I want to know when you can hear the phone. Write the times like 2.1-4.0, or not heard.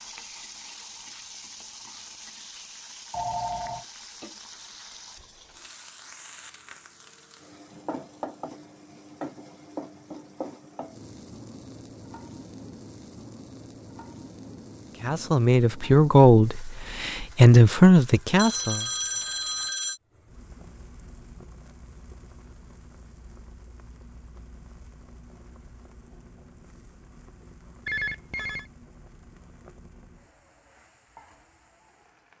3.1-3.9, 18.4-20.0, 27.9-28.7.